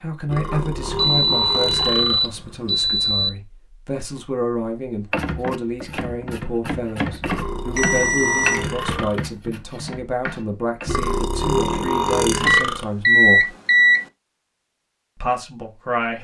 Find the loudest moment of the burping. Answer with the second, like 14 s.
12 s.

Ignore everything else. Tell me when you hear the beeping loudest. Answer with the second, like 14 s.
13 s.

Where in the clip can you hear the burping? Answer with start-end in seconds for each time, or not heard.
0.2-2.3, 7.2-9.2, 10.8-12.8.